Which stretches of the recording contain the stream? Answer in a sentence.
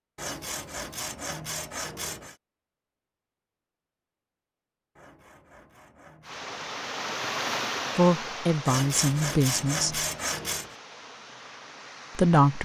You can hear the stream from 6.2 to 12.6 s.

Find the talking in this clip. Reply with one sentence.
The talking can be heard from 8.0 to 10.0 s and from 12.2 to 12.6 s.